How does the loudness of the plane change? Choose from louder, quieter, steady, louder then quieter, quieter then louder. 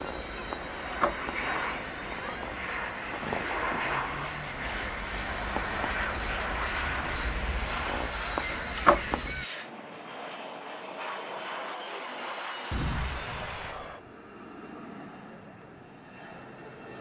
quieter.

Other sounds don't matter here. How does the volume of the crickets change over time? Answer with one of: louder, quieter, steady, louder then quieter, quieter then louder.
louder.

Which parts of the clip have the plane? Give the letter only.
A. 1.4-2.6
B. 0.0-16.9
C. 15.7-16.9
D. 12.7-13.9
B.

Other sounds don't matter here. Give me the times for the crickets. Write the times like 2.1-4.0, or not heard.
0.0-9.4.